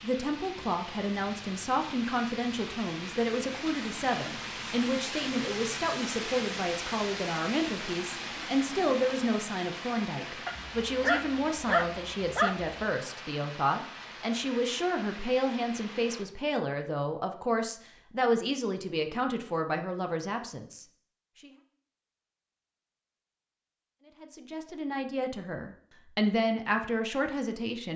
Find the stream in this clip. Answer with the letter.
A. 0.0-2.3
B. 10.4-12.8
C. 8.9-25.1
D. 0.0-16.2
D.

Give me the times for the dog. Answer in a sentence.
You can hear the dog from 10.4 to 12.8 s.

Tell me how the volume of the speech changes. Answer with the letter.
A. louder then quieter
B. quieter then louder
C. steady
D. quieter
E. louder
C.